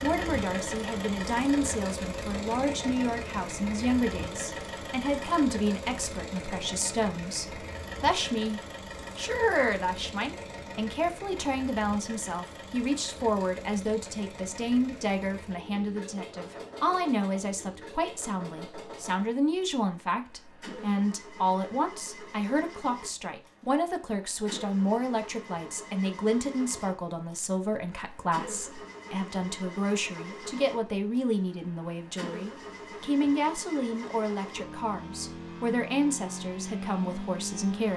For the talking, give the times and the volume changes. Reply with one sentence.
The talking can be heard from 0.0 to 37.9 s, at a steady volume.